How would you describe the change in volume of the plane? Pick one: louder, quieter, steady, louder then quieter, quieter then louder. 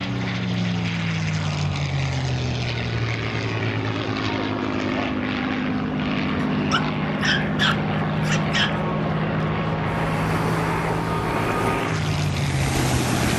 steady.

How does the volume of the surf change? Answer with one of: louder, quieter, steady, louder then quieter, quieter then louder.
louder.